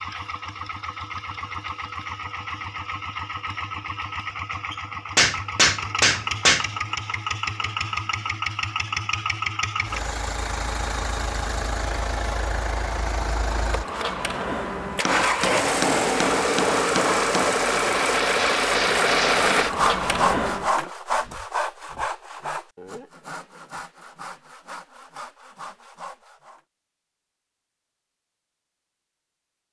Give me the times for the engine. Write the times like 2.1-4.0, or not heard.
0.0-20.7.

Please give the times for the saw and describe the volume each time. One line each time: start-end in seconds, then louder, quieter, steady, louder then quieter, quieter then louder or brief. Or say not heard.
19.6-26.6 quieter.